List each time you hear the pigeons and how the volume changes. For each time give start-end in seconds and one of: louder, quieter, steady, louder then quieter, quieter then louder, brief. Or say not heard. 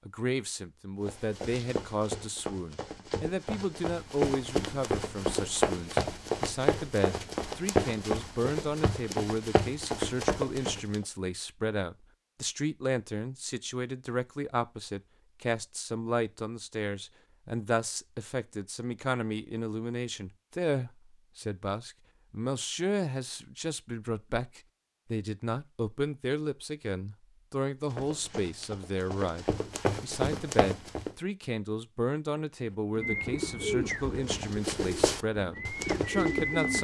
32.6-36.7 quieter then louder.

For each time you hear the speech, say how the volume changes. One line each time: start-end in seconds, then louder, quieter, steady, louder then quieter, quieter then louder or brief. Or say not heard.
0.1-36.7 steady.